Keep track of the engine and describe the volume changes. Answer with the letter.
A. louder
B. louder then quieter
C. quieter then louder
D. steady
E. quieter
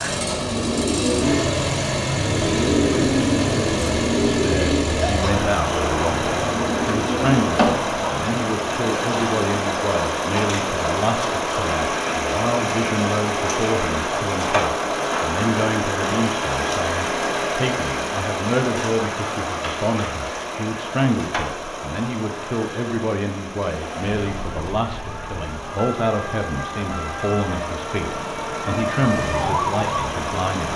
E.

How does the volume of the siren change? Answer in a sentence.
The loudness of the siren goes up.